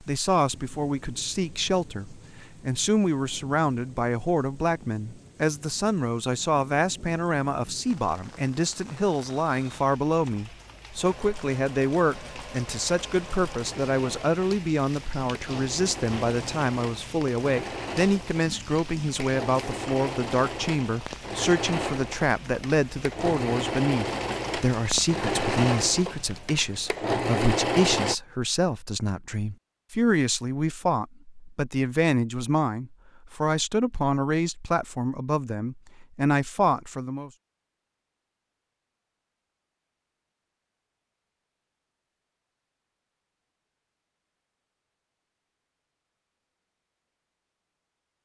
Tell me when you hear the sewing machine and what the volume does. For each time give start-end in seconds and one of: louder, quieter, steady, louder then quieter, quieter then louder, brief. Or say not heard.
10.9-28.1 louder.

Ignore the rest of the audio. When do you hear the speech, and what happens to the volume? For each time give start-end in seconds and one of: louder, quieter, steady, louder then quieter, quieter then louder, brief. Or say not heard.
0.0-37.3 steady.